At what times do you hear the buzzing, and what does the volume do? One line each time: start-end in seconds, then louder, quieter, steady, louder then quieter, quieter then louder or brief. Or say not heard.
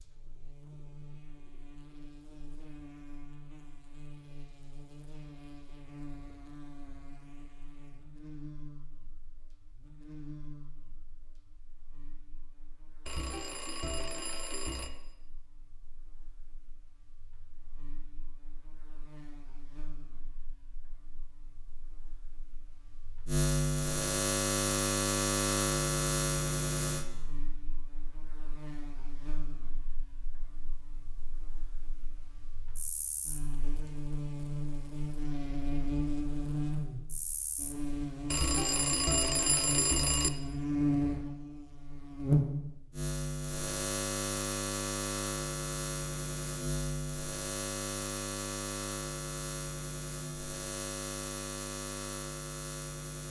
0.0-53.2 quieter then louder.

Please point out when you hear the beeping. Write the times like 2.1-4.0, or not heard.
13.1-14.9, 38.3-40.3.